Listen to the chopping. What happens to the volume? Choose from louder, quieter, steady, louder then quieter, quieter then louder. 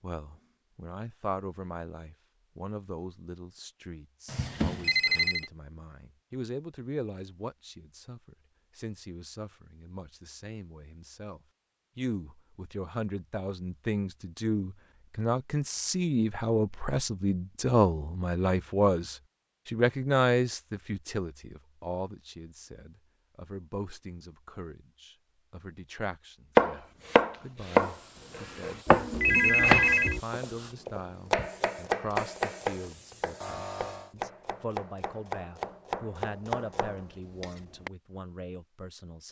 quieter.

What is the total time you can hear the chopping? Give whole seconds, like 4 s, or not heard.
11 s.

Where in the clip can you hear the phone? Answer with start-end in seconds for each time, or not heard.
4.2-5.5, 29.1-30.2.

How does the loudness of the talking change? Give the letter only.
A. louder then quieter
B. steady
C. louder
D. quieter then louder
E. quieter
A.